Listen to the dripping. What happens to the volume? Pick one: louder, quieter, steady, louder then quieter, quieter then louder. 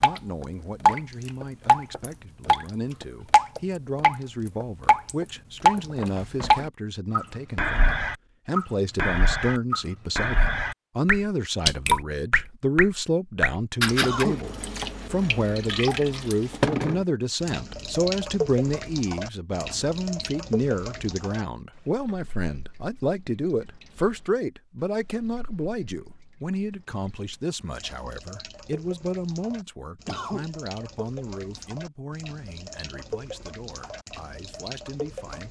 quieter then louder.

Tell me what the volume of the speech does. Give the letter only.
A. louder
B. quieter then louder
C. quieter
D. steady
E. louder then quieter
E.